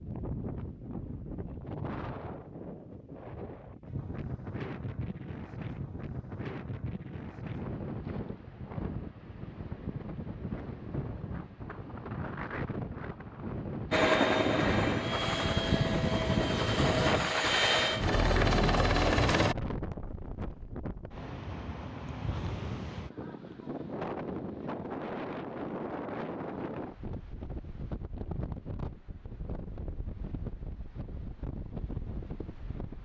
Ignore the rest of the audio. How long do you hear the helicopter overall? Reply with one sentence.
The helicopter can be heard for 6 seconds in total.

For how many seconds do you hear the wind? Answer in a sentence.
You can hear the wind for 33 seconds altogether.